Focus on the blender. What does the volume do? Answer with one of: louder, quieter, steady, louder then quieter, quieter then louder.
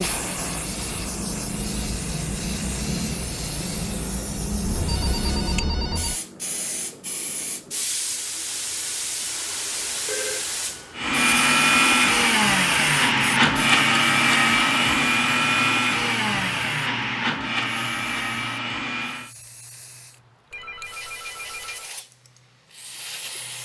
quieter.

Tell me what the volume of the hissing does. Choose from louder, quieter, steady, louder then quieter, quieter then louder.
quieter.